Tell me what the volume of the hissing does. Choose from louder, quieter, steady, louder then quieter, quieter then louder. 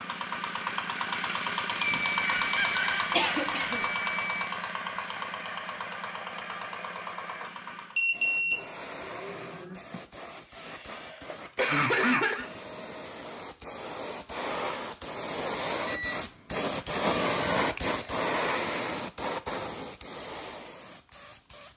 louder then quieter.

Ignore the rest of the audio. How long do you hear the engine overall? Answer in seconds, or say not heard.
8 s.